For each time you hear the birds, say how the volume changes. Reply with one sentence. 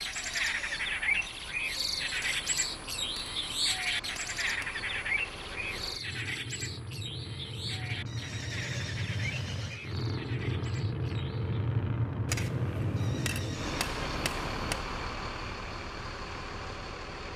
You can hear the birds from 0.0 to 11.6 s, getting quieter.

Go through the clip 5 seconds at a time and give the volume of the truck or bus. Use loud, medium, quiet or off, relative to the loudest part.
quiet, medium, loud, medium.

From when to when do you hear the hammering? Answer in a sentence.
The hammering can be heard from 2.1 to 4.8 s and from 12.2 to 14.8 s.